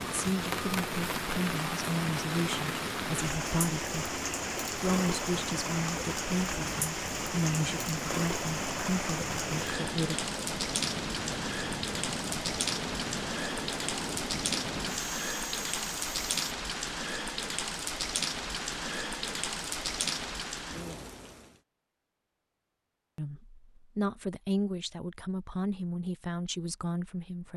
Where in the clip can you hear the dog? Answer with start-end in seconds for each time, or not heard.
not heard.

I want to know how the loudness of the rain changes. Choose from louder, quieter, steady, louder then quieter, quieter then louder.
steady.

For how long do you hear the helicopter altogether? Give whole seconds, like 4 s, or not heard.
16 s.